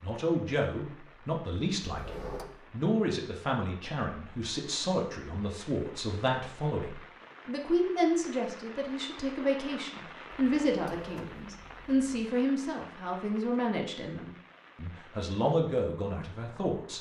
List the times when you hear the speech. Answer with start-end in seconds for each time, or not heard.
0.0-16.9.